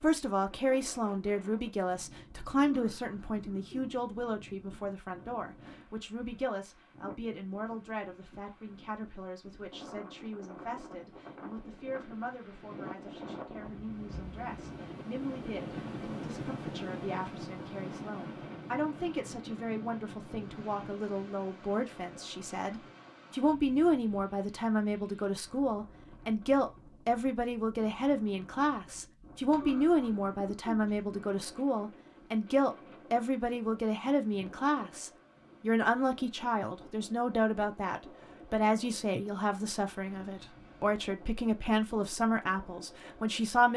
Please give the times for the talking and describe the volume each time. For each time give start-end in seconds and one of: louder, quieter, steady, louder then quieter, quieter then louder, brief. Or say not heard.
0.0-43.7 quieter then louder.